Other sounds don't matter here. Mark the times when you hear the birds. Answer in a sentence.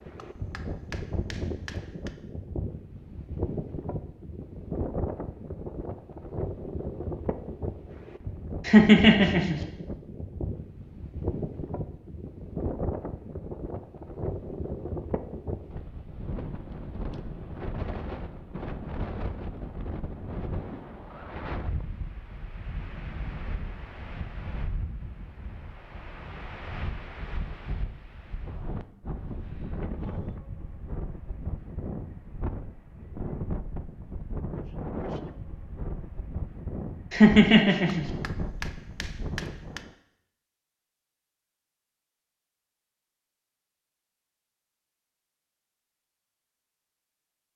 You can't hear the birds here.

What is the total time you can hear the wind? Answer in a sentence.
You can hear the wind for 40 seconds altogether.